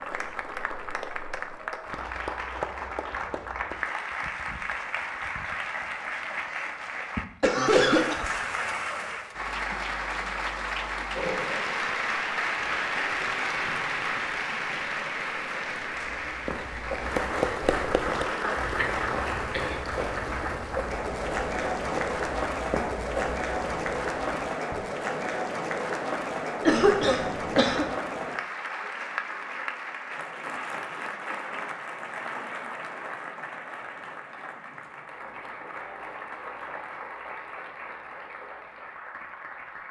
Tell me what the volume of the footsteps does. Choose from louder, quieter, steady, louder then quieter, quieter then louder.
steady.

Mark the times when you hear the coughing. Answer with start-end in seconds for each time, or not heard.
6.5-8.2, 18.6-20.2, 26.6-27.9.